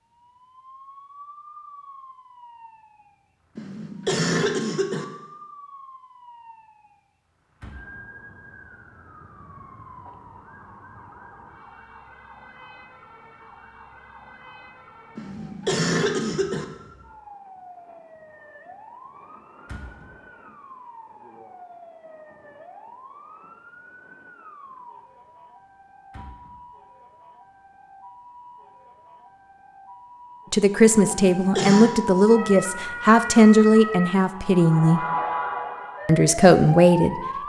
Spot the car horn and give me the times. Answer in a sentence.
The car horn can't be heard in this clip.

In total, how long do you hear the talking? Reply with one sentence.
You can hear the talking for 6 seconds altogether.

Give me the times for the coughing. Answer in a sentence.
The coughing can be heard from 3.5 to 5.0 s, from 15.2 to 16.6 s and from 31.1 to 32.0 s.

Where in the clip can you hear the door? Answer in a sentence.
You can hear the door from 7.6 to 8.1 s, from 19.6 to 20.1 s and from 26.1 to 26.6 s.